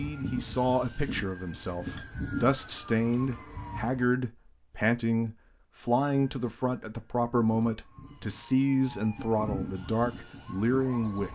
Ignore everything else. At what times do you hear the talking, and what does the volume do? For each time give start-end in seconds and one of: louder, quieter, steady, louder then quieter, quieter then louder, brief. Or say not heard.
0.0-11.3 steady.